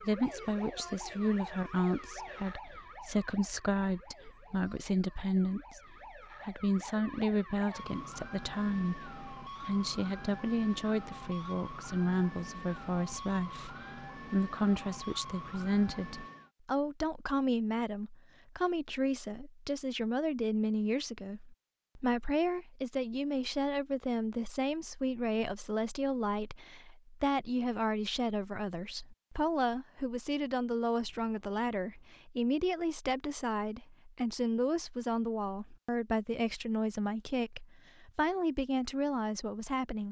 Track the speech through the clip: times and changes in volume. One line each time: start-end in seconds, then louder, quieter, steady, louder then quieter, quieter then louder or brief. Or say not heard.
0.0-40.0 steady.